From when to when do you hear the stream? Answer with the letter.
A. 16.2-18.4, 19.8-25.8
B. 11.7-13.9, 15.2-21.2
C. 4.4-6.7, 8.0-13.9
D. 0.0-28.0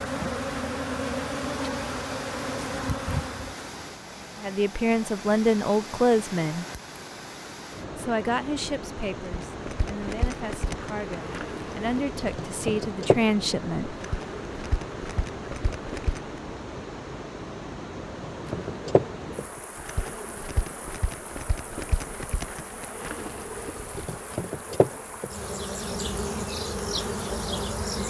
D.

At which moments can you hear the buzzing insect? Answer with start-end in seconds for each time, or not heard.
0.0-3.9, 9.3-16.6, 18.3-28.0.